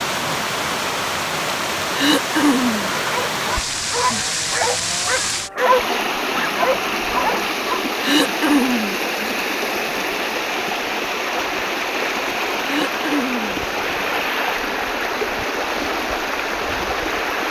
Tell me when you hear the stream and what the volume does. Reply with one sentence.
The stream can be heard from 0.0 to 17.4 s, at a steady volume.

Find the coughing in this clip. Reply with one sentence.
The coughing can be heard from 1.9 to 2.9 s, from 8.0 to 8.9 s and from 12.6 to 13.6 s.